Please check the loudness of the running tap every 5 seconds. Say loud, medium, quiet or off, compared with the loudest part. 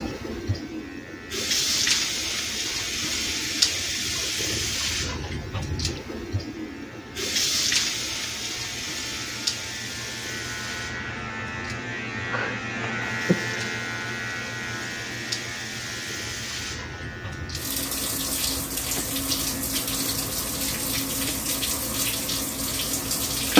loud, loud, quiet, medium, loud.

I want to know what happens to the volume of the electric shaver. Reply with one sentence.
The volume of the electric shaver goes up, then down.